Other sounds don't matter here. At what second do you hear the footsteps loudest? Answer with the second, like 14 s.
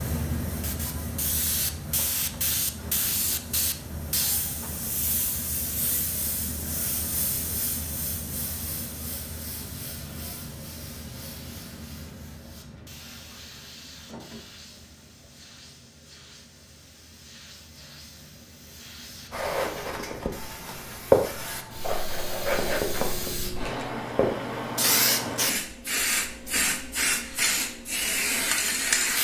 21 s.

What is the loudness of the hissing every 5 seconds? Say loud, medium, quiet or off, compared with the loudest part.
medium, medium, quiet, quiet, medium, loud.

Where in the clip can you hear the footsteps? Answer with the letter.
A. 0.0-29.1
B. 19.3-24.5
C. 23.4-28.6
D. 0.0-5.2
B.